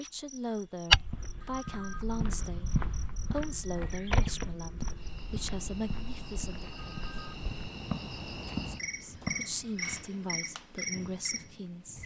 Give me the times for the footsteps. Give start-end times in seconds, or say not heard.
0.9-10.1.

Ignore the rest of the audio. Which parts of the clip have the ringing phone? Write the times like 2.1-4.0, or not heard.
1.4-2.0, 6.7-7.4.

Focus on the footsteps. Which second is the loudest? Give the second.
1 s.